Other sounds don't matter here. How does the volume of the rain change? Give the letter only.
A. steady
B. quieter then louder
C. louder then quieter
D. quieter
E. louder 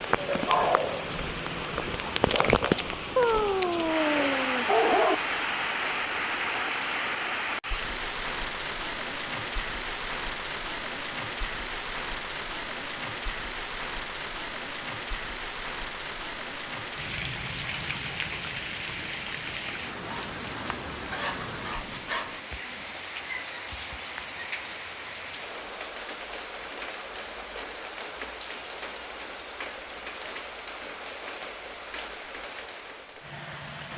D.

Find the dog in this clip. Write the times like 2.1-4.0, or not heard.
3.1-5.2, 19.6-22.4.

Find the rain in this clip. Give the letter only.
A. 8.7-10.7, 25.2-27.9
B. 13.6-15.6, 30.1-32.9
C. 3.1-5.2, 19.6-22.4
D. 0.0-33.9
D.